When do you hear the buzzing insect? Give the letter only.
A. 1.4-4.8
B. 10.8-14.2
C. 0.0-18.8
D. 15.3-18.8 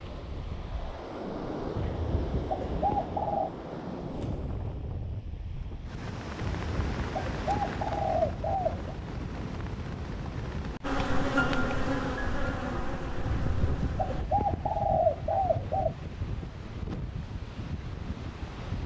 B.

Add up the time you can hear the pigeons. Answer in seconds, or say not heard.
7 s.